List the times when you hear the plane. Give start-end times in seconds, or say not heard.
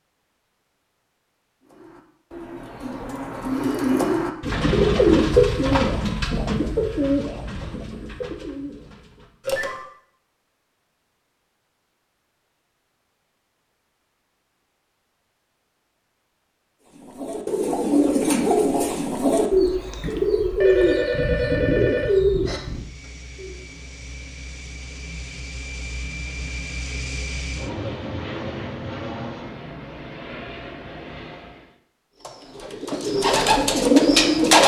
22.6-31.8.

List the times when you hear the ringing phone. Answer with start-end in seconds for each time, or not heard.
9.4-9.8, 20.6-22.6.